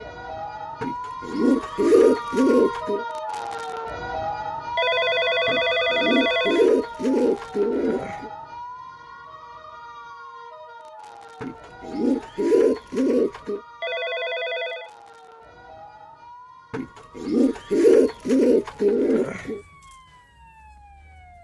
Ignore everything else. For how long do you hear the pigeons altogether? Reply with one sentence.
You can hear the pigeons for 10 seconds altogether.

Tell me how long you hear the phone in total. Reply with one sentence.
The phone can be heard for 3 seconds in total.